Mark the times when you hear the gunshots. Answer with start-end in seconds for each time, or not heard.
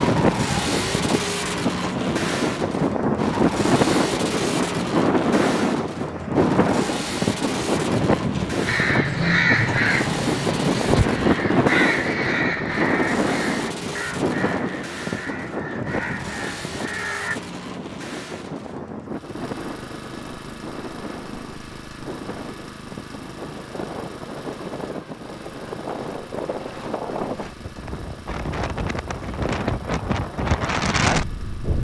not heard.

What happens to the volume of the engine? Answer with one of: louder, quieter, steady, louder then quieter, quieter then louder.
quieter.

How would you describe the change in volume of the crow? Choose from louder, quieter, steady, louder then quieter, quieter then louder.
quieter.